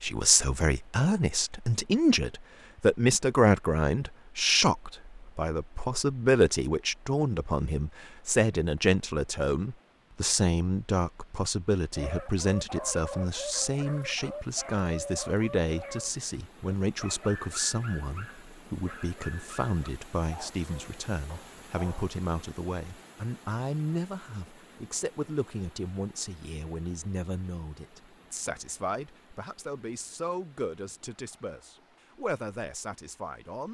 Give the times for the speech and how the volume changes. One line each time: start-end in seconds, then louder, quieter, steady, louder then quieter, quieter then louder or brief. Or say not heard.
0.0-33.6 quieter.